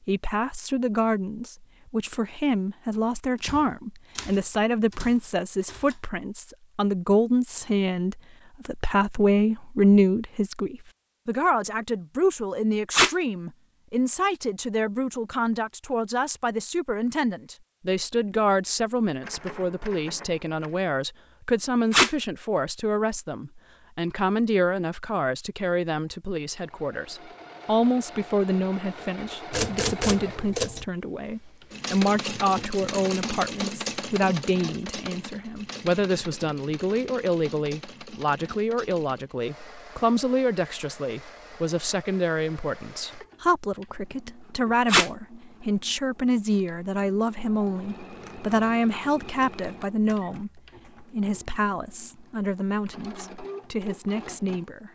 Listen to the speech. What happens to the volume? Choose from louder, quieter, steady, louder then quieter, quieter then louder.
steady.